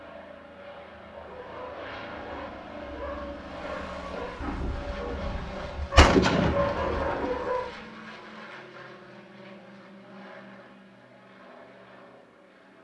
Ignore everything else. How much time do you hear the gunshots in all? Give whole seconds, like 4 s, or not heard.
3 s.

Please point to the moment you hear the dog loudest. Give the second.
7 s.